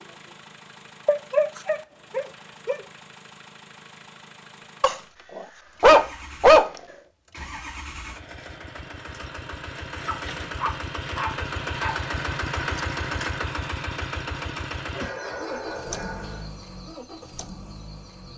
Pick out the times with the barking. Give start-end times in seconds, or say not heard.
1.1-2.8, 4.8-6.7, 10.1-12.0, 14.9-16.4.